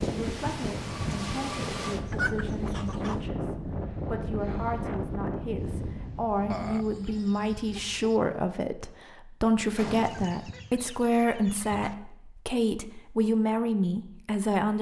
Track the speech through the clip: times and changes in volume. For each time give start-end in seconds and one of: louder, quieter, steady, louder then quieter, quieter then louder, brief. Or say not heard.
0.0-14.7 louder.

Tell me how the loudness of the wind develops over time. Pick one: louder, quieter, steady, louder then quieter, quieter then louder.
quieter.